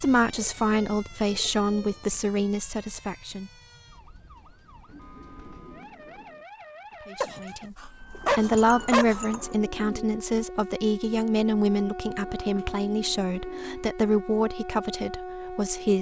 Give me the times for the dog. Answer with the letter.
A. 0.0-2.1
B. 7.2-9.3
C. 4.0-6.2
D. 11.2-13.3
B.